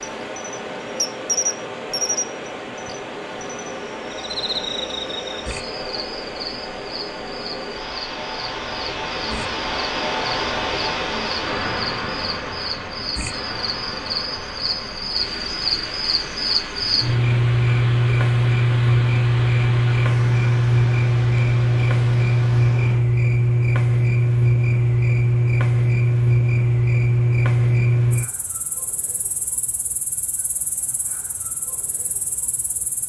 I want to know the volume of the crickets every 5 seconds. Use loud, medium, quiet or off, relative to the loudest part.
medium, quiet, quiet, loud, loud, loud, quiet.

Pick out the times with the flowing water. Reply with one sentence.
The flowing water can be heard from 0.0 to 23.0 s.